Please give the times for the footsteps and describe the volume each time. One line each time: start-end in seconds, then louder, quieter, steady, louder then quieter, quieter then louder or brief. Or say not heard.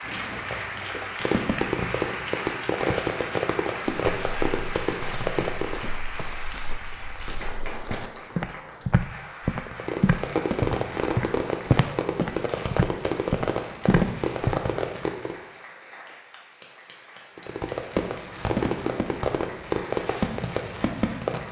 3.9-14.6 louder.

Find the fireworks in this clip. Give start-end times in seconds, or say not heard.
0.0-6.0, 9.7-15.3, 17.4-21.4.